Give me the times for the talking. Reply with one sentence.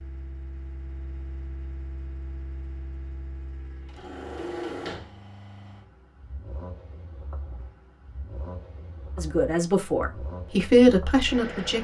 The talking can be heard from 9.2 to 11.8 s.